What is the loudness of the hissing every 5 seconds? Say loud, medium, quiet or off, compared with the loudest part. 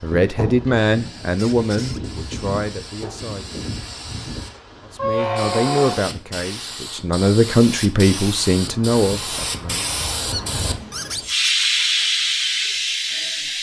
medium, medium, loud.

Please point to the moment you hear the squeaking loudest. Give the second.
5 s.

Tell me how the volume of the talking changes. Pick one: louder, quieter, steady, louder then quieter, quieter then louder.
quieter then louder.